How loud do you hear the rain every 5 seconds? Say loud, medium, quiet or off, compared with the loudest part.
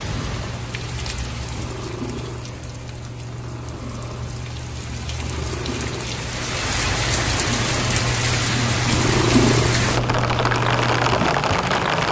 quiet, loud, loud.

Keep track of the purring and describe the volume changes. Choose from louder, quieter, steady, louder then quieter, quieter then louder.
louder.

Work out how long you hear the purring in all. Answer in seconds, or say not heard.
12 s.